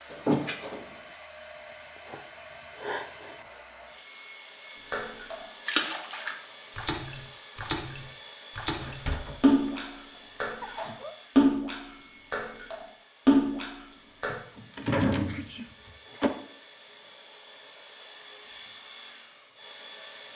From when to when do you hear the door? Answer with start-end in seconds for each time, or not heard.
0.1-0.8, 8.8-9.6, 14.2-16.3.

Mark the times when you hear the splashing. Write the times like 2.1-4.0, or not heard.
4.9-14.4.